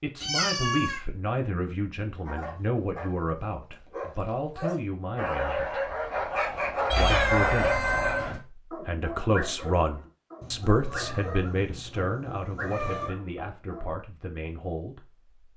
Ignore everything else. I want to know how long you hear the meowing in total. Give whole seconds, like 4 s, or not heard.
5 s.